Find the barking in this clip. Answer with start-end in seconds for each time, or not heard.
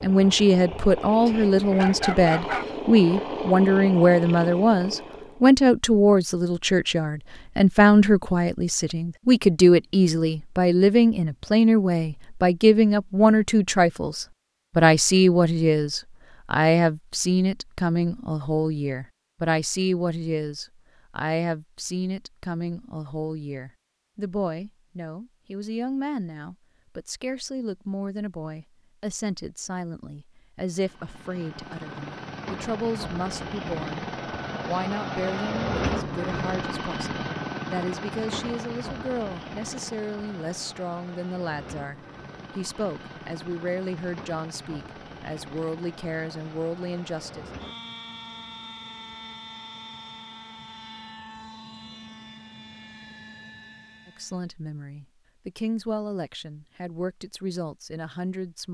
1.2-2.6.